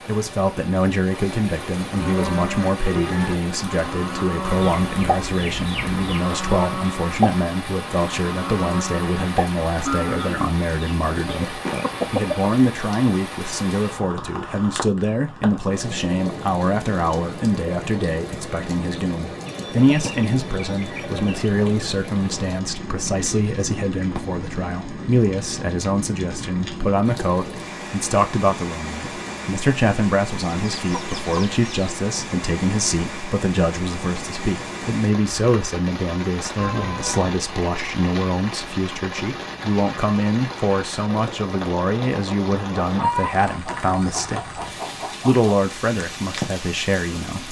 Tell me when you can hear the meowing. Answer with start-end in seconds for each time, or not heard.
36.5-37.4.